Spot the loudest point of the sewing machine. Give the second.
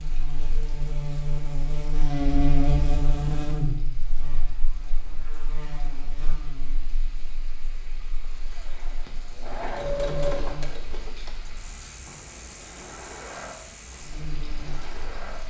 10 s.